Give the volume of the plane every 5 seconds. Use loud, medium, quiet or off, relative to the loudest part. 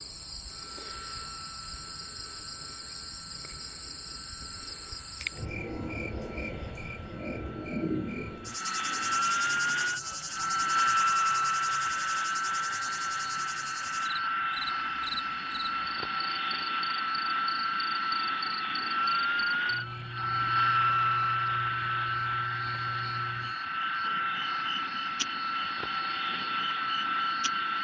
quiet, medium, loud, loud, loud, loud.